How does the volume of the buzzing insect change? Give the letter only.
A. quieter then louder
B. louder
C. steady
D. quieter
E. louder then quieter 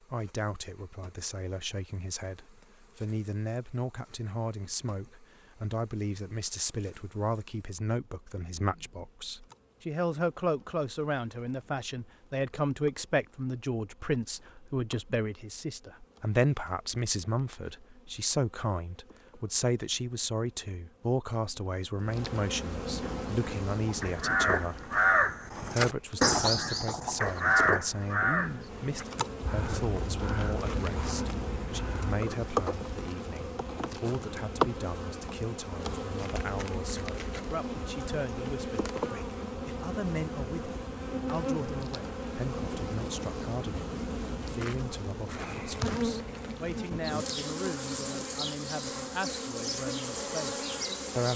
B.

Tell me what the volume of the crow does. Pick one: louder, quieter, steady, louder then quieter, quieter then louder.
quieter.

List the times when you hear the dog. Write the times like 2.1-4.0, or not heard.
not heard.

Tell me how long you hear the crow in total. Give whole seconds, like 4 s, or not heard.
9 s.